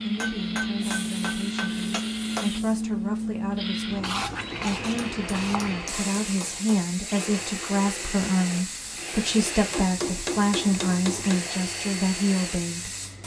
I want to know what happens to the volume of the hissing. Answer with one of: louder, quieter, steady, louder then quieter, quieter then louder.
quieter.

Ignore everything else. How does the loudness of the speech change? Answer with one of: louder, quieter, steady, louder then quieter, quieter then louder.
louder.